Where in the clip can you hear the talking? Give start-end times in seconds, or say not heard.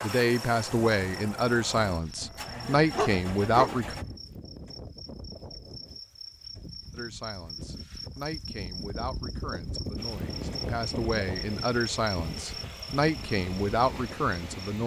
0.0-4.0, 6.9-14.8.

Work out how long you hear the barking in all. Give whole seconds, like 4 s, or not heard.
2 s.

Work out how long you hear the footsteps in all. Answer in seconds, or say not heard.
not heard.